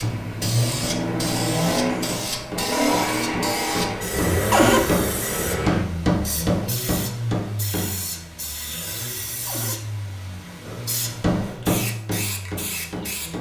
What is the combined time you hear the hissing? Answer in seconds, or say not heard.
13 s.